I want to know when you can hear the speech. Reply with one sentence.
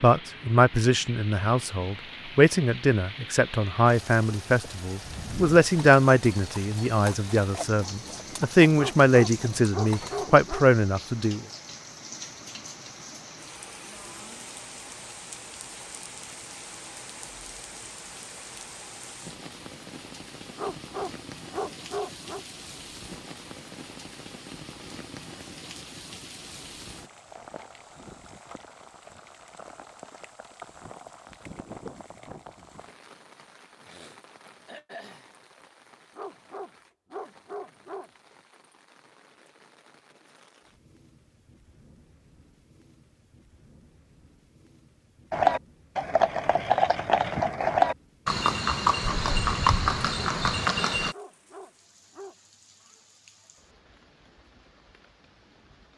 The speech can be heard from 0.0 to 11.4 s.